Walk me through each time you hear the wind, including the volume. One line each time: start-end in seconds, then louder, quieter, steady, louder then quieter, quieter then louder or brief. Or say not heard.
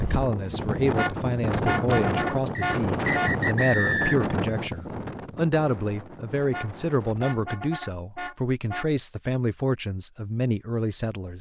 0.0-7.4 quieter.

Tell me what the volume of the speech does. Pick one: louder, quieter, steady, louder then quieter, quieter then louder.
steady.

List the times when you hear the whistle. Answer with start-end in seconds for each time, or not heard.
2.5-4.3.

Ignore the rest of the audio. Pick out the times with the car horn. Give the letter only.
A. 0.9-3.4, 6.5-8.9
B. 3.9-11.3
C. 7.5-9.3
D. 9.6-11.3
A.